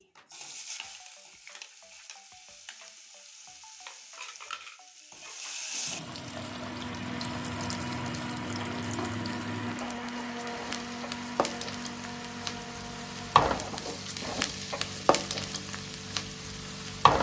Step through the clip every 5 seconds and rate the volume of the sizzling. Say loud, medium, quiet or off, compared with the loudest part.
quiet, medium, loud, loud.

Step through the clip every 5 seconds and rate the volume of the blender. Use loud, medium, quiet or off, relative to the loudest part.
off, loud, loud, off.